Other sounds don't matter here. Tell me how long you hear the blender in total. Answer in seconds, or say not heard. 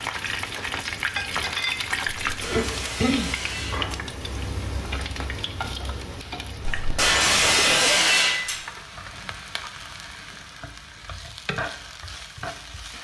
not heard.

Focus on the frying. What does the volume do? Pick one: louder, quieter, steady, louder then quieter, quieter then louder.
quieter.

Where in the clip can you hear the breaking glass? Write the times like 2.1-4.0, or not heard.
2.2-4.0, 6.7-8.7.